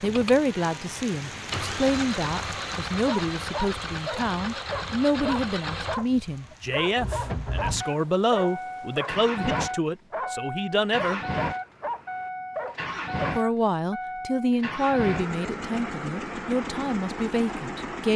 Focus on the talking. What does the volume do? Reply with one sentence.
The volume of the talking stays about the same.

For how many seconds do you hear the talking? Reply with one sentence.
You can hear the talking for 16 seconds altogether.